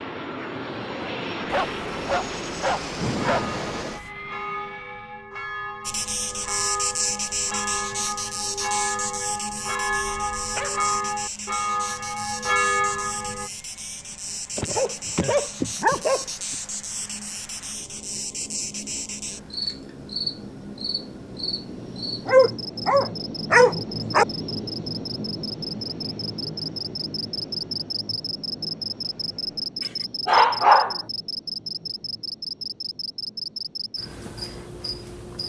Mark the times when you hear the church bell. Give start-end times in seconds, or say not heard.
3.3-13.5.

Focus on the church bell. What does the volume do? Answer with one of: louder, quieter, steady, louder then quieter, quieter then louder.
louder.